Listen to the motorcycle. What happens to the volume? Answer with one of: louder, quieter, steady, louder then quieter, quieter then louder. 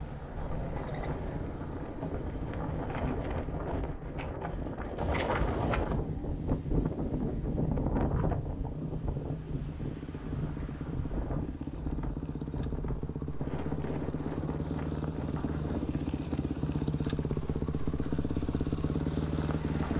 louder.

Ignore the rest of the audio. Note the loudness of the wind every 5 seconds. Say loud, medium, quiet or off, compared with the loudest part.
medium, loud, medium, medium.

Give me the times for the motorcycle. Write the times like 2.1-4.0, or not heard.
0.0-19.9.